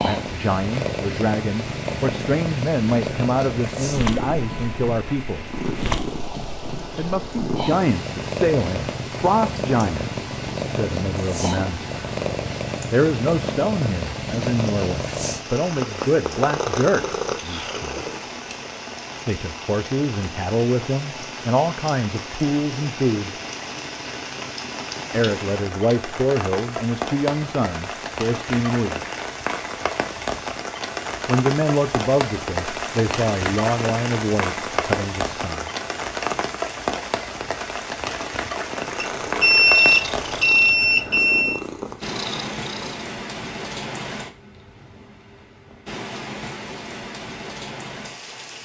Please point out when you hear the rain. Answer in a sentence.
The rain can be heard from 0.0 to 48.6 s.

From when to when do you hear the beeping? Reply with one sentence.
The beeping can be heard from 39.0 to 41.6 s.